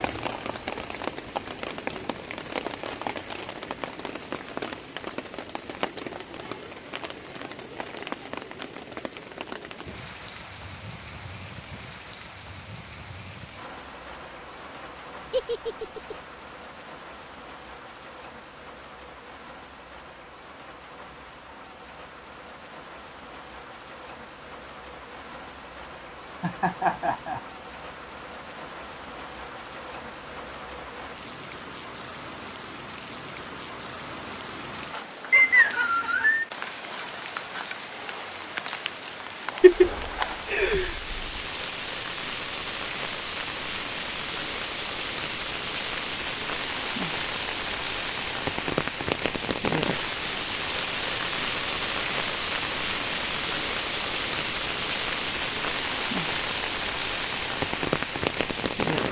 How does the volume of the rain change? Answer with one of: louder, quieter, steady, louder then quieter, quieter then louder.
quieter then louder.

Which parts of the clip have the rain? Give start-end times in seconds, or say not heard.
0.0-59.0.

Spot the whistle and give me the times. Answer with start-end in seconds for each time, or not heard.
35.3-36.5.